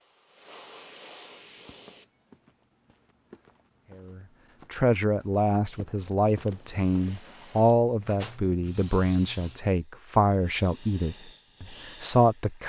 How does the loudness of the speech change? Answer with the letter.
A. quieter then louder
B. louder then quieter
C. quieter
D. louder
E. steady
E.